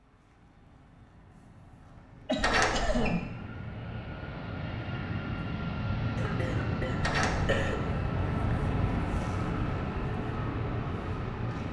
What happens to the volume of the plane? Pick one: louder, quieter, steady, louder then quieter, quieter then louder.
louder.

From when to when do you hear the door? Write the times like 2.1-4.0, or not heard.
2.4-3.1, 7.0-7.7.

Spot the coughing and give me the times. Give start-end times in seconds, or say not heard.
2.2-3.2, 6.2-7.8.